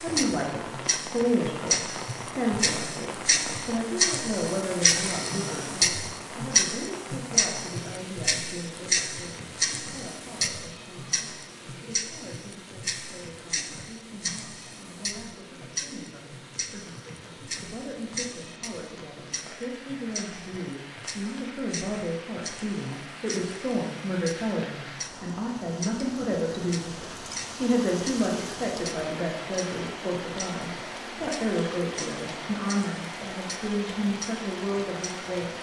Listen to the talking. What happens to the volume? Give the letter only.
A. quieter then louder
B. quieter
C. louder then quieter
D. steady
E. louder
A.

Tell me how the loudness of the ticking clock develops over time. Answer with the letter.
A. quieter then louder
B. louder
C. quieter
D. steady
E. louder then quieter
C.